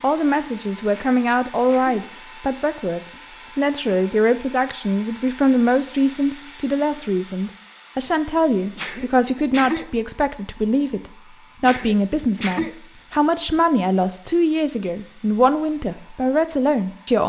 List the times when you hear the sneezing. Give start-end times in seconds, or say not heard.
0.9-2.0, 8.8-9.9, 11.6-12.8.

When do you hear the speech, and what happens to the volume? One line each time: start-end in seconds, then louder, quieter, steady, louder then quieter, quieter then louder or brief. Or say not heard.
0.0-17.2 steady.